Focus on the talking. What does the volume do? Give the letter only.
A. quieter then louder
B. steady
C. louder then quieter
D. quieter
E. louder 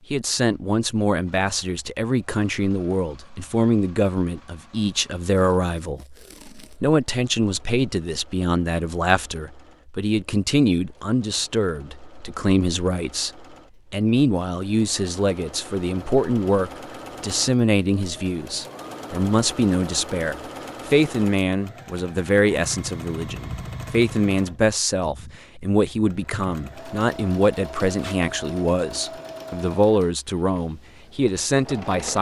B.